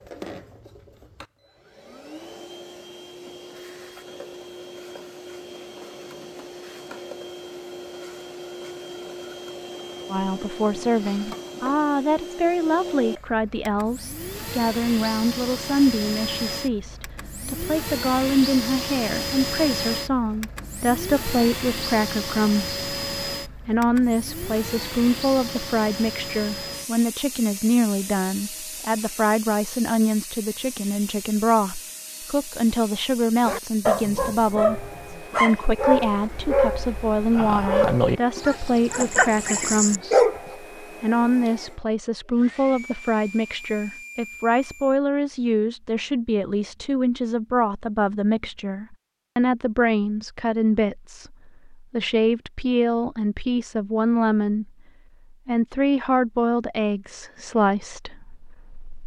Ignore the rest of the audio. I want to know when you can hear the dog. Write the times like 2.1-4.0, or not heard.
33.5-40.5.